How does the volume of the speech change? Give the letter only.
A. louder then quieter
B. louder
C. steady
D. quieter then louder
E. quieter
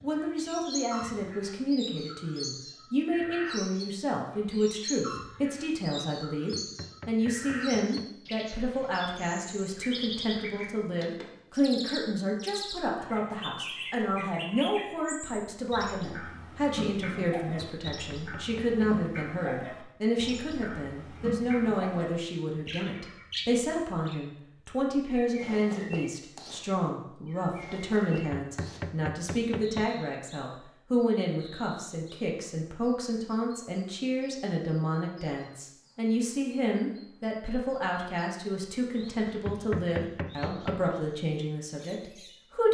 C.